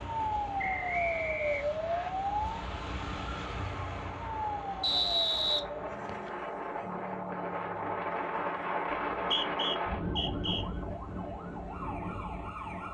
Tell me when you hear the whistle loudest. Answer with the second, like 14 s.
5 s.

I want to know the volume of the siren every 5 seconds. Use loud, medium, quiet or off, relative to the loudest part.
loud, medium, medium.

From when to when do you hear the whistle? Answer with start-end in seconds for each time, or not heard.
0.6-2.1, 4.8-6.3, 9.2-10.7.